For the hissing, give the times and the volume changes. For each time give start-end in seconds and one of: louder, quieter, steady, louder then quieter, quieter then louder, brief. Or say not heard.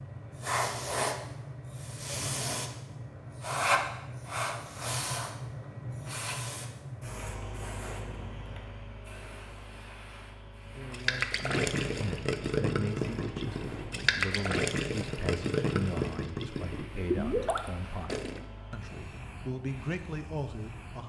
0.0-21.0 quieter.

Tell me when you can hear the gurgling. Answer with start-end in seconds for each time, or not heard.
10.9-18.4.